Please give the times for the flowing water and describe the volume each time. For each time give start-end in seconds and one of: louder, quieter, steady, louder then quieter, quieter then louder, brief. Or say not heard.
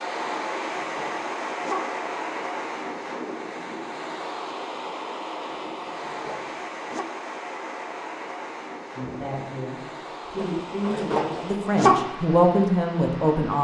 0.0-13.5 quieter.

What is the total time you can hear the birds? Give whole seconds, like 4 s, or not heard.
not heard.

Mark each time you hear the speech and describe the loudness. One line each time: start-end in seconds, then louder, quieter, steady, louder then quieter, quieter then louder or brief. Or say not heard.
8.9-13.5 louder.